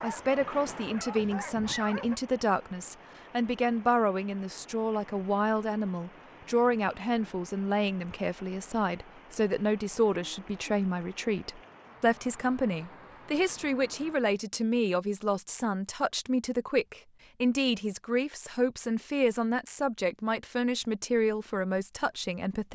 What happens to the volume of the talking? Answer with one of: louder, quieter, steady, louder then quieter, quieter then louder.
steady.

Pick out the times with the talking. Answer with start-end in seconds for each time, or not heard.
0.0-22.7.